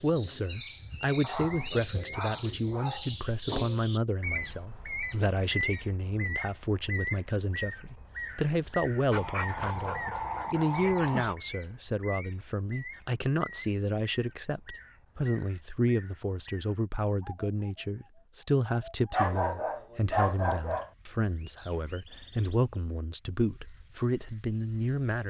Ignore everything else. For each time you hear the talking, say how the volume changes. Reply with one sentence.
You can hear the talking from 0.0 to 25.2 s, at a steady volume.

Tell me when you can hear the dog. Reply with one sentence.
You can hear the dog from 1.2 to 3.1 s, from 9.1 to 11.3 s and from 19.1 to 20.9 s.